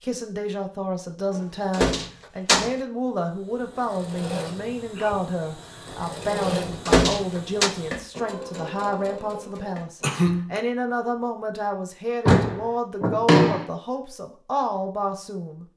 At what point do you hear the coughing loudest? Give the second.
10 s.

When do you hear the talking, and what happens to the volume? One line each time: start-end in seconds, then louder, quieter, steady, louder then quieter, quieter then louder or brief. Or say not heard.
0.0-15.7 steady.